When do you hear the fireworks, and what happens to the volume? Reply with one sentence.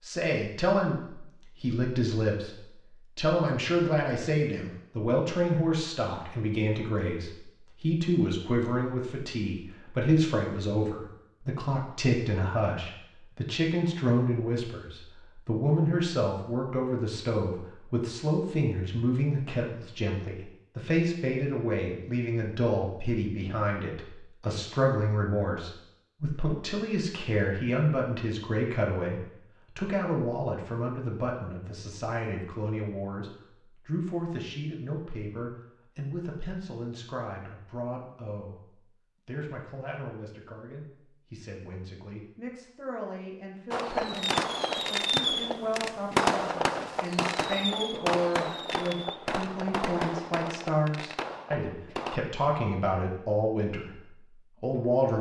The fireworks can be heard from 43.7 to 52.2 s, getting quieter.